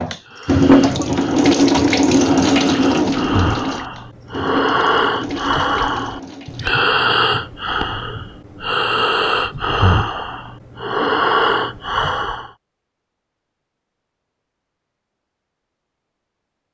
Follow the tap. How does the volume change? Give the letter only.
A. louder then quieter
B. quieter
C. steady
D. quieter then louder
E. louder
B.